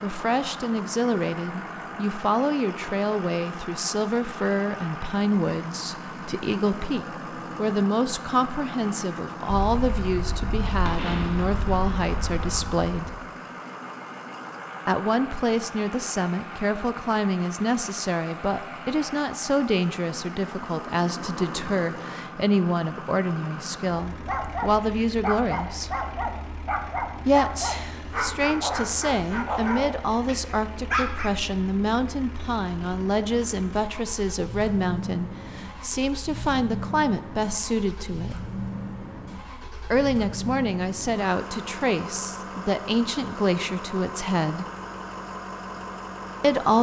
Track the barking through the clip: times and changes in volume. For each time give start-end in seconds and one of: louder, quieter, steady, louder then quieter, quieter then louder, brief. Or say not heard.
24.1-31.3 steady.